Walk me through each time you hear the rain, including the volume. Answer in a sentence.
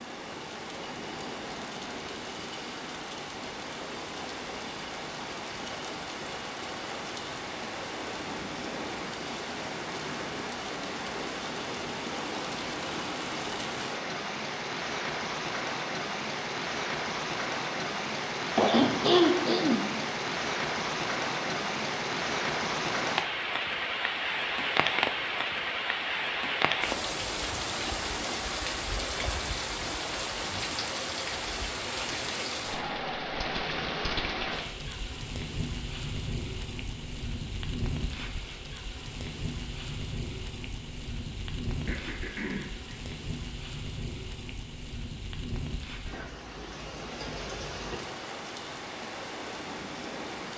The rain can be heard from 0.0 to 50.5 s, getting louder then quieter.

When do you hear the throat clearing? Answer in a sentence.
The throat clearing can be heard from 18.6 to 19.9 s and from 41.9 to 43.0 s.